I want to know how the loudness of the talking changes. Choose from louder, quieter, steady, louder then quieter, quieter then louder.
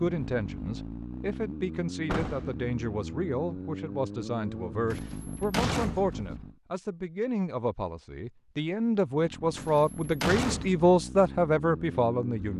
louder.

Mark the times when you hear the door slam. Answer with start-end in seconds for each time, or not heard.
2.0-2.5, 4.9-6.3, 9.6-10.8.